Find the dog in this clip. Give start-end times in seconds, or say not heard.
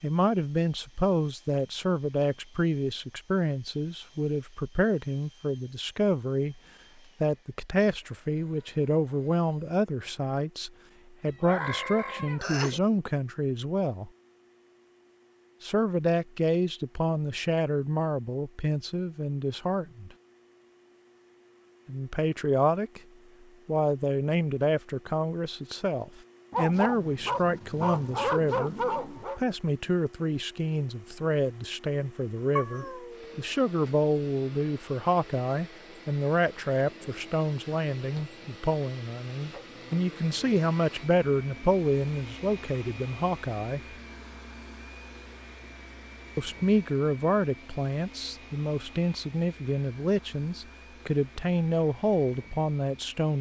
26.5-29.4.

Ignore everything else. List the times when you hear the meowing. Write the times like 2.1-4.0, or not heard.
11.2-12.8, 32.5-33.5.